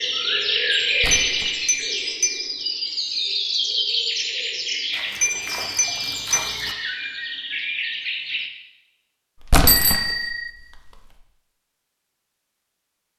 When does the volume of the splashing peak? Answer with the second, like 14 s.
10 s.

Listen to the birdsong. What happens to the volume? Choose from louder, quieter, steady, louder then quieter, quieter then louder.
quieter.